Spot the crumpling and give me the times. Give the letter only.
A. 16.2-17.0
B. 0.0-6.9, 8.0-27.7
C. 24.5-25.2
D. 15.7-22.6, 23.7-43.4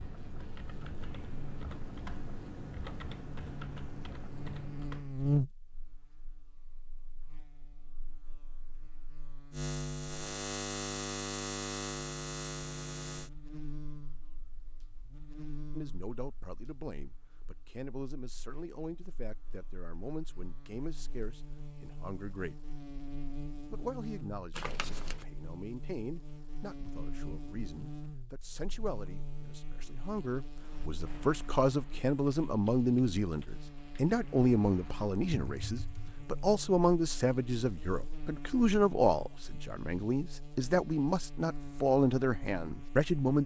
C.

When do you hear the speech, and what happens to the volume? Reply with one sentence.
The speech can be heard from 15.7 to 22.6 s, at a steady volume; and from 23.7 to 43.4 s, getting louder.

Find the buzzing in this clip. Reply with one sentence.
You can hear the buzzing from 0.0 to 43.4 s.